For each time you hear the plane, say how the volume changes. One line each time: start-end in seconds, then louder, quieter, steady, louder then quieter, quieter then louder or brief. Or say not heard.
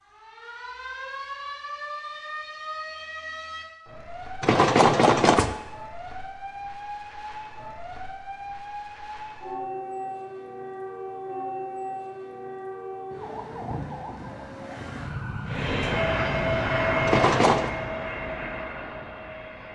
15.4-19.7 quieter.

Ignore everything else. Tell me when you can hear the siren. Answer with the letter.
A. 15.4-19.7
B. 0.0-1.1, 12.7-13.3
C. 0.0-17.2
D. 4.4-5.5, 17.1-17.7
C.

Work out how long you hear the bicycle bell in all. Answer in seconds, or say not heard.
2 s.